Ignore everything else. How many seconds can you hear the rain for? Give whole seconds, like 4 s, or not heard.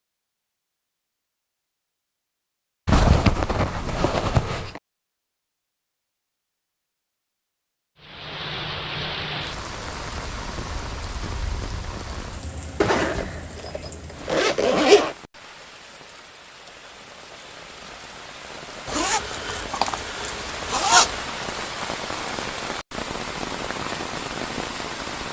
17 s.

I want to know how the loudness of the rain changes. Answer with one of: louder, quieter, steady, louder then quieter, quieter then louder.
quieter then louder.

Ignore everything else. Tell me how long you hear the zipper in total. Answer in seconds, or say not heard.
7 s.